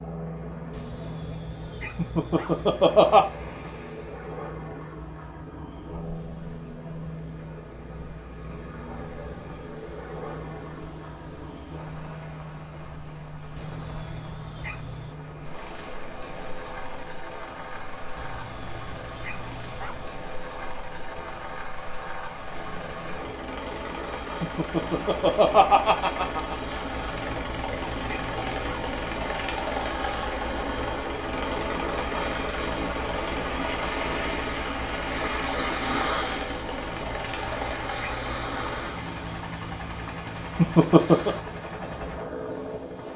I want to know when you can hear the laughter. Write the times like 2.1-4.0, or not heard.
1.9-3.2, 24.4-26.6, 40.5-41.4.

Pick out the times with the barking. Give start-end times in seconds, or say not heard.
0.7-2.8, 13.6-15.2, 18.1-20.1, 27.0-28.9, 36.9-38.9.